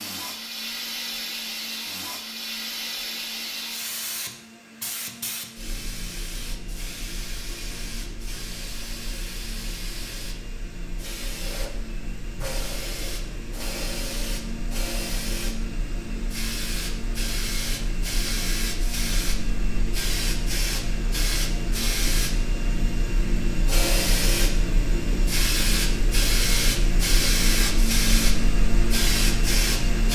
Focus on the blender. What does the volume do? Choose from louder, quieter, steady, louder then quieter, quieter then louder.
louder.